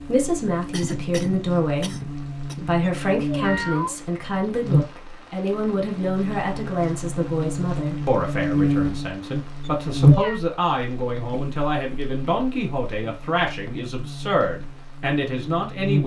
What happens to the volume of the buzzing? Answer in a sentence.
The volume of the buzzing goes up, then down.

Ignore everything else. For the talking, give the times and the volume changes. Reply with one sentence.
The talking can be heard from 0.0 to 16.0 s, at a steady volume.